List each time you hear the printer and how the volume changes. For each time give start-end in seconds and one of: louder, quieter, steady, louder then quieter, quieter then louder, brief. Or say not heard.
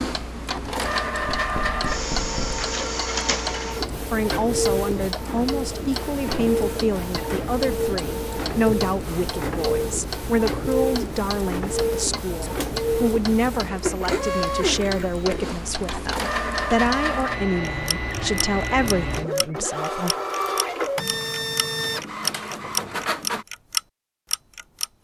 0.0-23.4 steady.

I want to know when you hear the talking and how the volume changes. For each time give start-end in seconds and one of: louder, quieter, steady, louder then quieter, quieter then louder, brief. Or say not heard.
4.0-20.1 steady.